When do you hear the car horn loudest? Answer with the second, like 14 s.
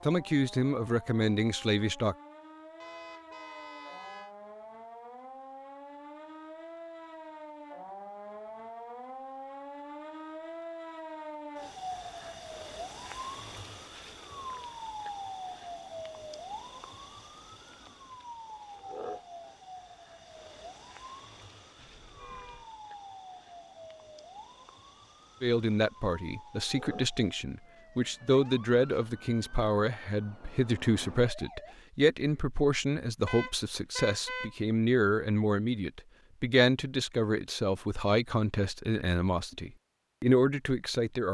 34 s.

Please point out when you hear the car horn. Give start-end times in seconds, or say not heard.
2.8-4.3, 21.8-22.7, 33.2-34.5.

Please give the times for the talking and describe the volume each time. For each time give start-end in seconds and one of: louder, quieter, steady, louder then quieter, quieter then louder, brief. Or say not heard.
0.0-2.1 brief
25.4-41.3 steady.